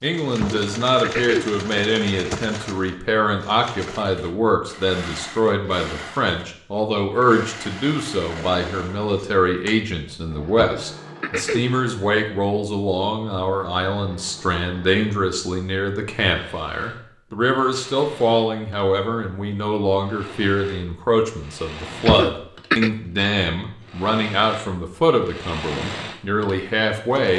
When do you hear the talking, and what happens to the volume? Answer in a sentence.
The talking can be heard from 0.0 to 27.3 s, at a steady volume.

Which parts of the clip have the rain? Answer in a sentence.
The rain can't be heard in this clip.